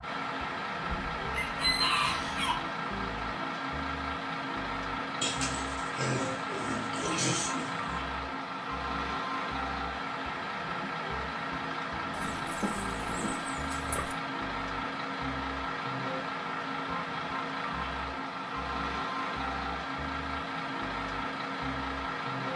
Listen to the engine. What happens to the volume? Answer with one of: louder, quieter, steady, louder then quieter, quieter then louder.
steady.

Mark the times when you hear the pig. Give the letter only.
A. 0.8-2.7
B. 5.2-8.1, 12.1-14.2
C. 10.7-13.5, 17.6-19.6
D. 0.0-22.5
B.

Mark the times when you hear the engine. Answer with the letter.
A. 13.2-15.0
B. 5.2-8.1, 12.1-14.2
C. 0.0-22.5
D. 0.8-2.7
C.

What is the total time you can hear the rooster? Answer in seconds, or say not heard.
2 s.